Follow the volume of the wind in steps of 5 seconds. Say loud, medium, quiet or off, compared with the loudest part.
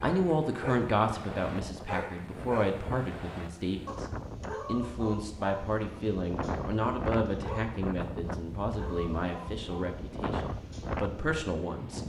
medium, loud, loud.